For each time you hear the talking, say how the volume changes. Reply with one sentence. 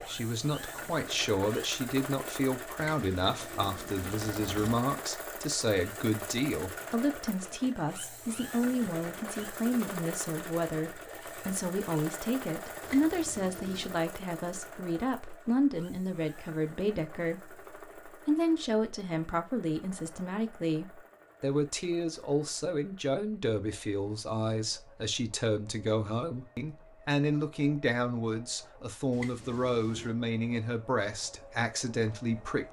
You can hear the talking from 0.0 to 32.6 s, at a steady volume.